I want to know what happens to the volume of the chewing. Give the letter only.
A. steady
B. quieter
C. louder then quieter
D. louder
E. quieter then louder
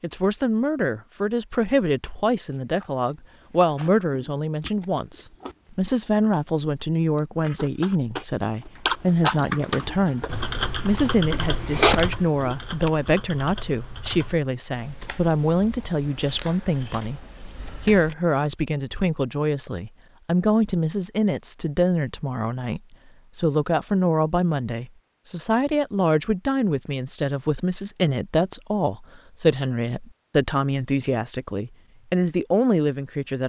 D.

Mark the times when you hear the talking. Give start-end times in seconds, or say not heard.
0.0-33.4.